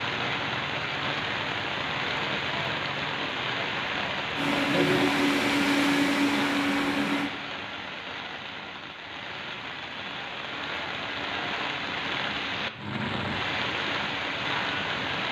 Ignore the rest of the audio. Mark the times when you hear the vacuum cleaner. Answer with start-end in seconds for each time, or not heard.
4.3-7.3.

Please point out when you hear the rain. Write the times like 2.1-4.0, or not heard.
0.0-15.2.